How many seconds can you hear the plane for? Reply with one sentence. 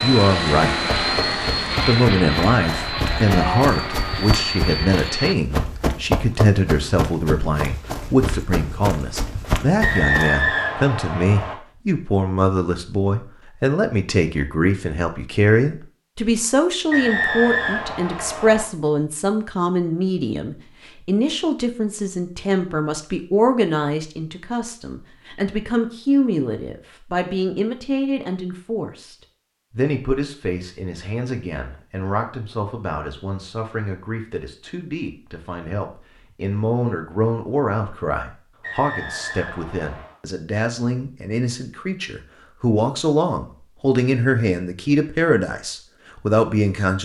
You can hear the plane for 5 seconds altogether.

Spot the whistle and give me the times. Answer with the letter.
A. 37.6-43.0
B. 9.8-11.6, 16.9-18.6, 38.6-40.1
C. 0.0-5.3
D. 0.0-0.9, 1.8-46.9
B.